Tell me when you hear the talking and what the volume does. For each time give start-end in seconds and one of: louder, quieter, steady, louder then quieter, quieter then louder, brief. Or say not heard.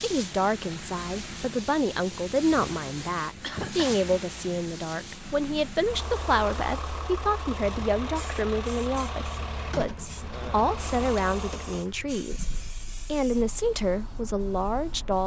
0.0-15.2 steady.